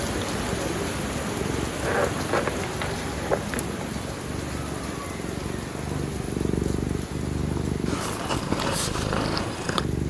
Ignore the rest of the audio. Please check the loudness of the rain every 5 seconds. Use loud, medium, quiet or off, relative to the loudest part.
loud, medium.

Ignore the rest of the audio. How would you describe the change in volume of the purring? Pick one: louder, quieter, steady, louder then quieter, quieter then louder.
louder.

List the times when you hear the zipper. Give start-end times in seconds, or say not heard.
1.8-3.8.